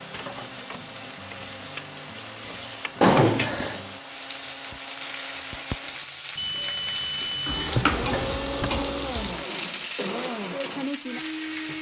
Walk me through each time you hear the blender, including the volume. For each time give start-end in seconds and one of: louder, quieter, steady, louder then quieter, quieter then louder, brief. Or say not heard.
0.0-11.7 louder.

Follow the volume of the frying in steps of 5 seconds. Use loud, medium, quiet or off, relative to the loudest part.
medium, loud, medium.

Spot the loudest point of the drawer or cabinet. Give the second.
3 s.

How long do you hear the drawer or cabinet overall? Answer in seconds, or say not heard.
2 s.